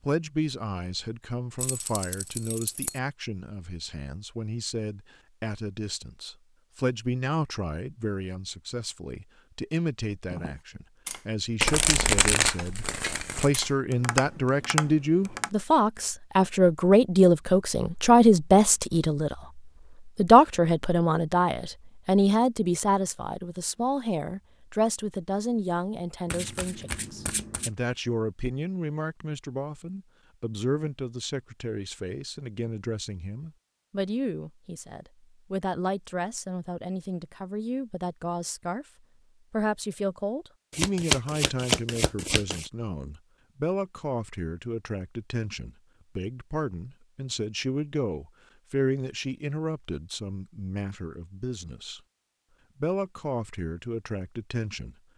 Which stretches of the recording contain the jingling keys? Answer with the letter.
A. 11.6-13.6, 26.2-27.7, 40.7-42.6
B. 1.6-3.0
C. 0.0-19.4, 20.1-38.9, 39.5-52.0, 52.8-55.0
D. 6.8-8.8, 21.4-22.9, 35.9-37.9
B.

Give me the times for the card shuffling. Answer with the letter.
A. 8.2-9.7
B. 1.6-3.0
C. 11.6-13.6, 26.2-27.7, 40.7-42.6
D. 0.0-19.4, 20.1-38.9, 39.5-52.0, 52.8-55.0
C.